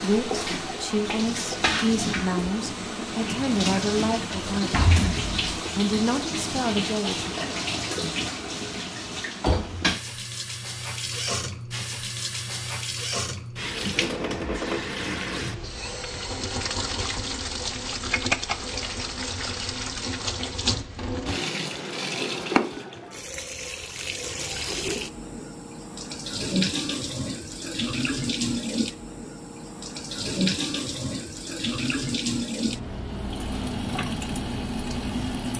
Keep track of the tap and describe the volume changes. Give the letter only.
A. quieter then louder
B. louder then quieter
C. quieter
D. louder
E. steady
E.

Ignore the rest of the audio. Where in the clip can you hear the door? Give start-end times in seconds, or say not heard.
4.3-5.4.